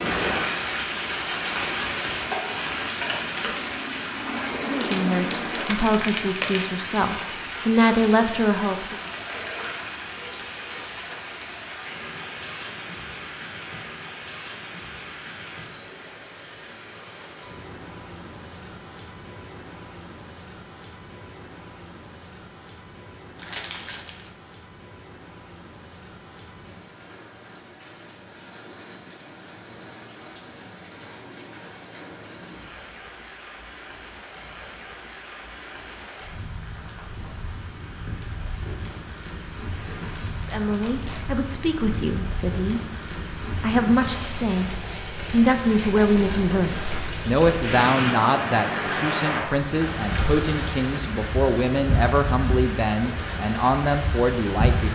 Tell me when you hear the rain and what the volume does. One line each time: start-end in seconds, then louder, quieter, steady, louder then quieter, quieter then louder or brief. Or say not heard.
0.0-54.8 quieter then louder.